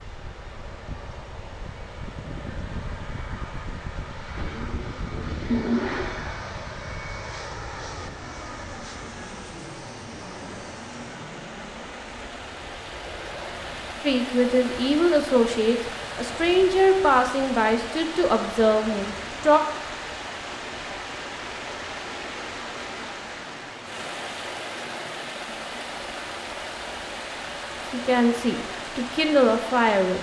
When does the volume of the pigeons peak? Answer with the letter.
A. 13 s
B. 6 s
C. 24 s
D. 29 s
B.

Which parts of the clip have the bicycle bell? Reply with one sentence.
The bicycle bell can't be heard in this clip.